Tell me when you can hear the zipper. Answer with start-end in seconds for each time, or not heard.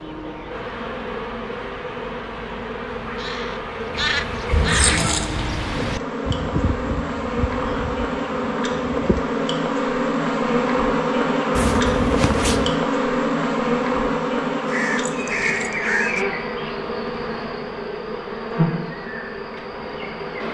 11.6-12.8.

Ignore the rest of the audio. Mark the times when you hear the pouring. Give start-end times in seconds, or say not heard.
4.5-5.2.